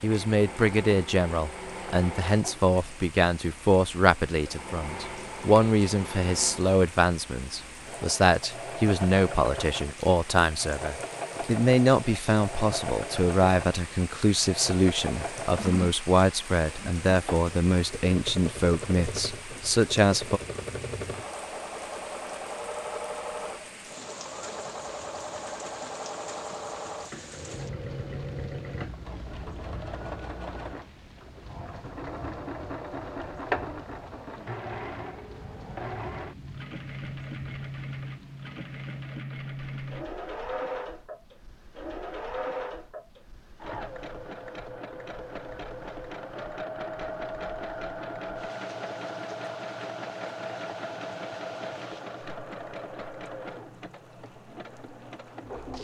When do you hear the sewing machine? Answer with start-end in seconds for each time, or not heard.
0.0-55.7.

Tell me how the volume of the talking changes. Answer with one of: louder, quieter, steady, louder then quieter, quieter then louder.
steady.